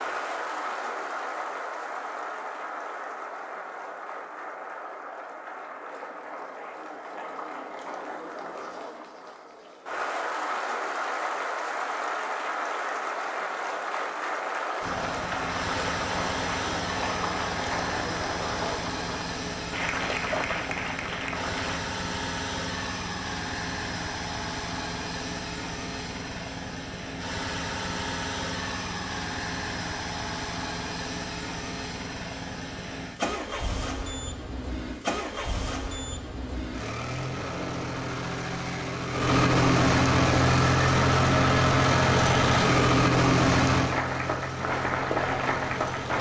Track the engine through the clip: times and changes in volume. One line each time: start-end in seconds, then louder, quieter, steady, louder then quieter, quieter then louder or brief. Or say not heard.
14.8-46.1 louder.